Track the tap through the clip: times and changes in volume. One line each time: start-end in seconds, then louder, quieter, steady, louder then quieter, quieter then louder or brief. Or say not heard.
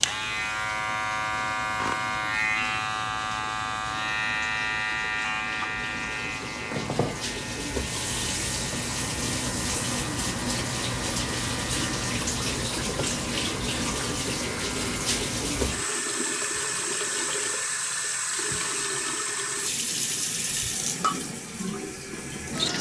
0.0-22.7 louder.